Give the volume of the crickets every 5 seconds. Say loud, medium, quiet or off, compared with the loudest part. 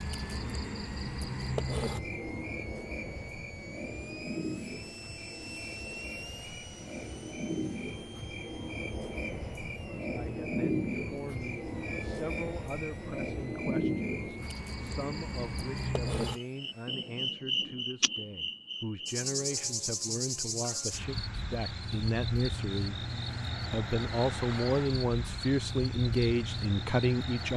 loud, medium, loud, loud, loud, loud.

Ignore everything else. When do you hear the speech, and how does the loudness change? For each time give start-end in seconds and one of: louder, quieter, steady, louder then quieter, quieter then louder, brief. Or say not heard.
10.0-27.5 louder.